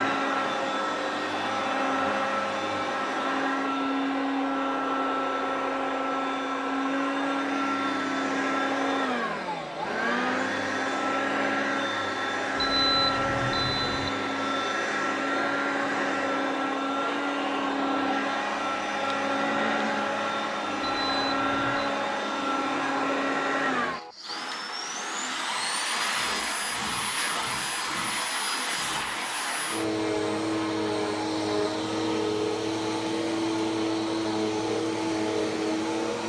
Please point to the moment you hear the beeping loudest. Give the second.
13 s.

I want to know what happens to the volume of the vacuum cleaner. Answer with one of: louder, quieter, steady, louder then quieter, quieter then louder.
steady.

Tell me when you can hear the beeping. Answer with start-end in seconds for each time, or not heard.
12.6-14.1, 20.9-21.9.